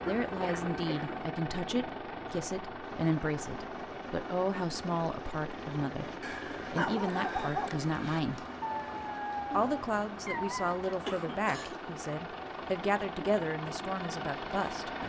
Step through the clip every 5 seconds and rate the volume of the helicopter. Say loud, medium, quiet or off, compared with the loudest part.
loud, medium, loud.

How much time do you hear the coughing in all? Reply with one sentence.
You can hear the coughing for 2 seconds altogether.